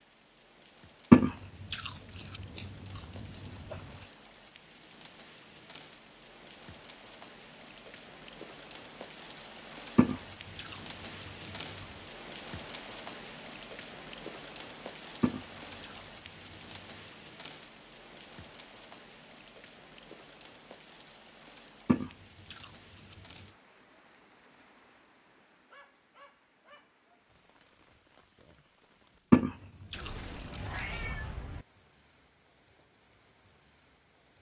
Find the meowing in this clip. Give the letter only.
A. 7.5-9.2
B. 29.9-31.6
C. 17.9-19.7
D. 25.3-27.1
B.